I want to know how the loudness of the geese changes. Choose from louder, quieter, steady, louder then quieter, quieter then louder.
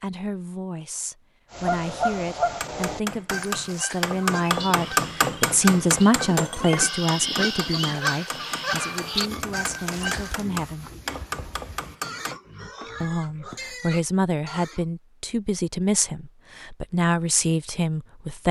quieter then louder.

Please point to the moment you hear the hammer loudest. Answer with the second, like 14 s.
5 s.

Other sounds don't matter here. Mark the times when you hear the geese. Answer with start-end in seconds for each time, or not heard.
1.5-10.3.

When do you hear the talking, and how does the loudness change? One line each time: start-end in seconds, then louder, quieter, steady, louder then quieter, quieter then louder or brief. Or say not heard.
0.0-10.9 louder then quieter
13.0-18.4 steady.